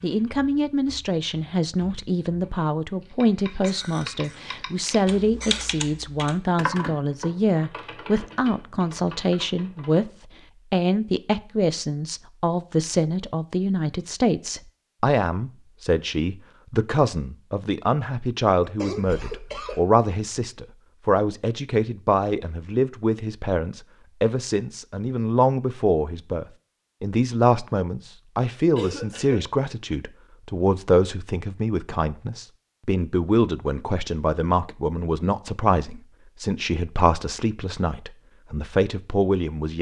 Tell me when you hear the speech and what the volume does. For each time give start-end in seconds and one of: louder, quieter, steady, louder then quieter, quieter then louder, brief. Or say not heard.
0.0-10.1 steady
10.7-39.7 steady.